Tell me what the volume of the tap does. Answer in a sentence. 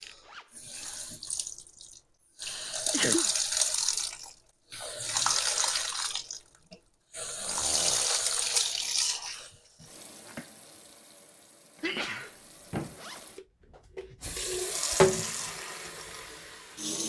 The loudness of the tap goes down, then up.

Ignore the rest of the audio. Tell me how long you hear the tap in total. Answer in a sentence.
The tap can be heard for 17 seconds in total.